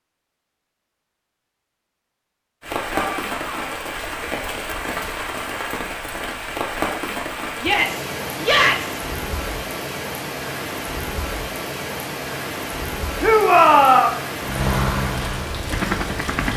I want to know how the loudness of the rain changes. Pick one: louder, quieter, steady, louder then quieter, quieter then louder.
steady.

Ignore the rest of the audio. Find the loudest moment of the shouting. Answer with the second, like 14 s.
14 s.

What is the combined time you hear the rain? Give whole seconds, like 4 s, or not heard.
14 s.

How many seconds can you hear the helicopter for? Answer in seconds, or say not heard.
2 s.